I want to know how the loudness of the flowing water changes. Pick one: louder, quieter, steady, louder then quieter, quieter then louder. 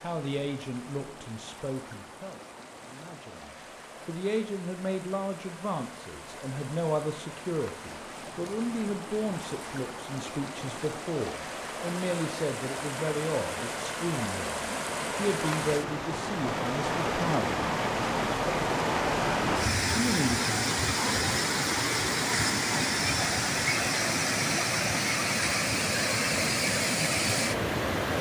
louder.